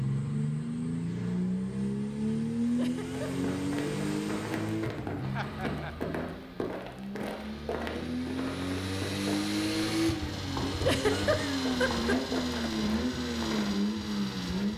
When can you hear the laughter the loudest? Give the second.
11 s.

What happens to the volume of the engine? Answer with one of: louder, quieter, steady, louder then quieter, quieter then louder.
quieter then louder.